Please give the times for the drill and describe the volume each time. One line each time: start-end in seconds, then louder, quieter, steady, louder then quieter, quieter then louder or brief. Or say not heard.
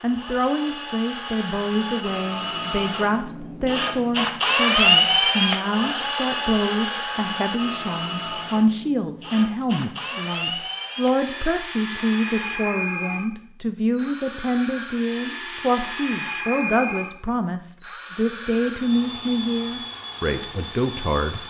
0.0-21.4 louder then quieter.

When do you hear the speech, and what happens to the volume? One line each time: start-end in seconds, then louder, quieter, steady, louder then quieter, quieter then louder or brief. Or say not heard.
0.0-21.4 steady.